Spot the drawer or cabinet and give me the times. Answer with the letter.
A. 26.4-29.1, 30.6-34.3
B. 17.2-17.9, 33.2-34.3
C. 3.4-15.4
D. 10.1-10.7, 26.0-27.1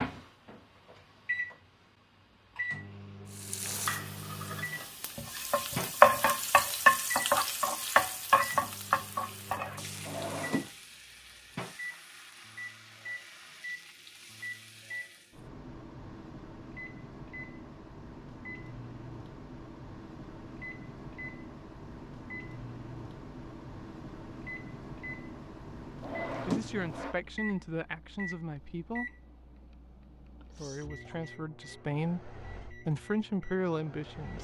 D.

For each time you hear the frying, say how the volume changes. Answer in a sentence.
You can hear the frying from 3.4 to 15.4 s, getting louder then quieter.